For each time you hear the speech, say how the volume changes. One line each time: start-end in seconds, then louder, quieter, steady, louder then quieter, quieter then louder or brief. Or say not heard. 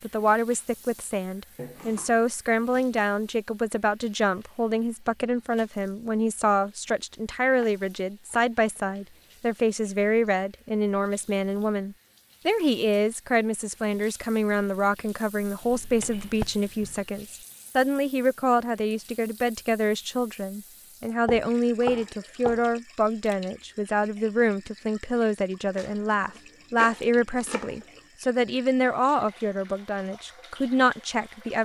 0.0-31.6 steady.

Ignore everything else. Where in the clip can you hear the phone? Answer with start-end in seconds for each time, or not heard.
not heard.